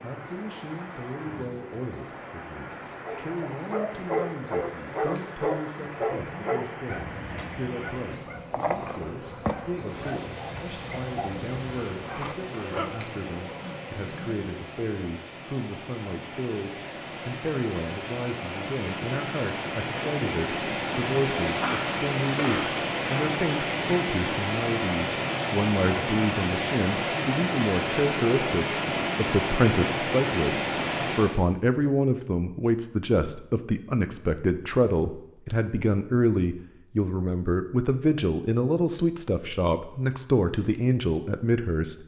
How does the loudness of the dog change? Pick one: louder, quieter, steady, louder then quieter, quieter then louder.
quieter.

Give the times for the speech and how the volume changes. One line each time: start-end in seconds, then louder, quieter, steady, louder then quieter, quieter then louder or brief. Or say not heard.
0.0-42.0 louder.